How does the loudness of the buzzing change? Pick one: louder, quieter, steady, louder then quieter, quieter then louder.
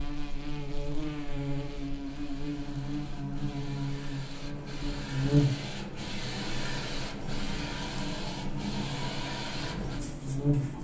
louder then quieter.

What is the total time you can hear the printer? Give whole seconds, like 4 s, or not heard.
11 s.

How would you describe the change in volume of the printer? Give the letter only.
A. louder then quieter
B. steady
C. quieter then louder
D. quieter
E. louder
E.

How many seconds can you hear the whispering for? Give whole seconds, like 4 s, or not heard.
not heard.